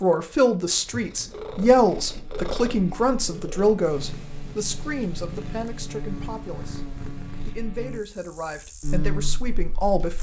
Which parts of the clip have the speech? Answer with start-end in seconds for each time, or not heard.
0.0-6.8, 7.5-10.1.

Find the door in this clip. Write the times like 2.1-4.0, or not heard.
not heard.